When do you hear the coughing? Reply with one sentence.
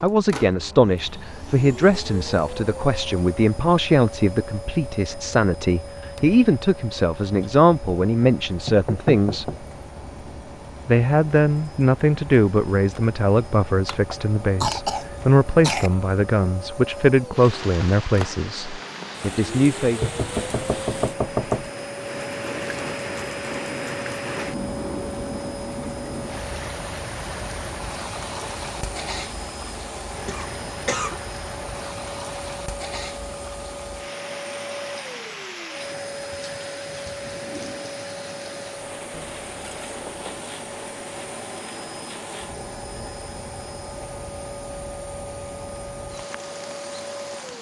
You can hear the coughing from 13.8 to 15.9 s and from 30.2 to 31.1 s.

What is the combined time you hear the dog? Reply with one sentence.
You can't hear the dog here.